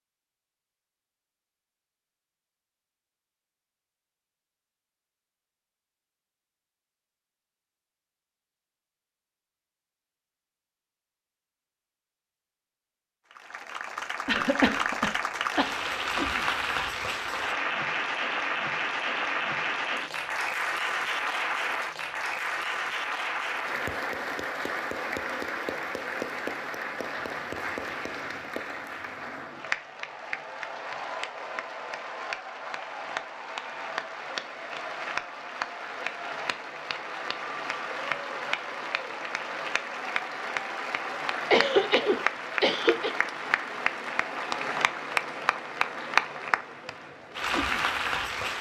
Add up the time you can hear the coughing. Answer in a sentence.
The coughing can be heard for 3 seconds in total.